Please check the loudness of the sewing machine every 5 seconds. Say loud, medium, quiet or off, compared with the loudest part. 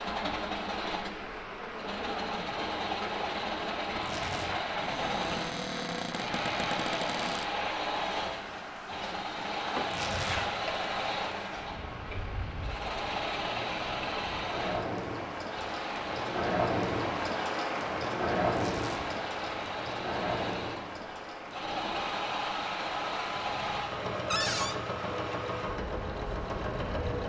loud, loud, loud, medium, loud, loud.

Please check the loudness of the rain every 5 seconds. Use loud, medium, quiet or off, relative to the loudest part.
medium, medium, medium, loud, medium, medium.